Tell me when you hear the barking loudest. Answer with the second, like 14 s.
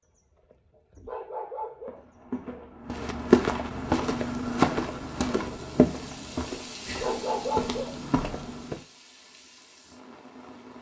7 s.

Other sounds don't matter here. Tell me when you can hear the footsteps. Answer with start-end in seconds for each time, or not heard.
1.9-8.8.